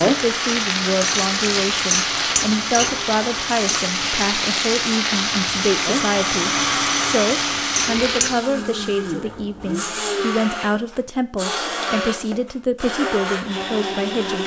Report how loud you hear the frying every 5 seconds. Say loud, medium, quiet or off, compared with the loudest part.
loud, loud, off.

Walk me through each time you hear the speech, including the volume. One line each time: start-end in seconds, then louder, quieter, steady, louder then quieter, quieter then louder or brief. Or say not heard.
0.0-14.4 steady.